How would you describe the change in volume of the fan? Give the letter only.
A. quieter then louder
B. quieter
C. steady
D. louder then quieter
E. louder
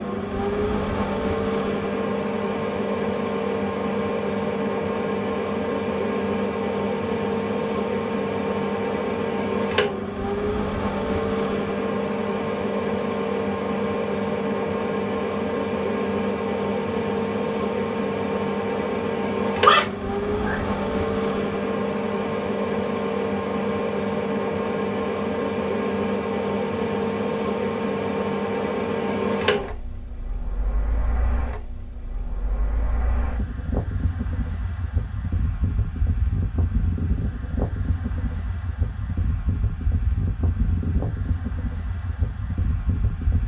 B.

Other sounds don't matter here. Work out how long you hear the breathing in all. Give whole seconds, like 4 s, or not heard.
not heard.